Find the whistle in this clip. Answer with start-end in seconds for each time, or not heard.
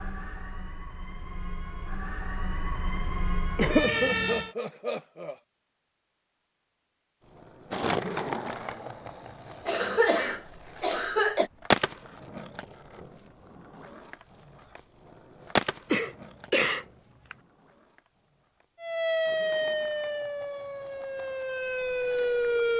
not heard.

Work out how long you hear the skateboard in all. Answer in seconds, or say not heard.
15 s.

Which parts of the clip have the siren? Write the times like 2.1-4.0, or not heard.
0.0-4.5, 18.8-22.7.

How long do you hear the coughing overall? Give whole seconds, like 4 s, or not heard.
5 s.